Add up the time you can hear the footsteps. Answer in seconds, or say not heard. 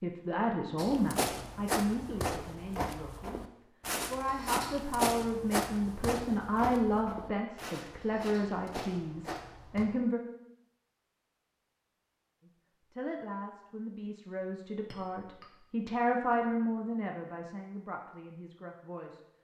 9 s.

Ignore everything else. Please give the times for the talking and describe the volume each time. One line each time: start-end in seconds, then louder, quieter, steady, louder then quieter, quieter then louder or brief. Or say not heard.
0.0-10.2 quieter then louder
12.4-19.2 louder then quieter.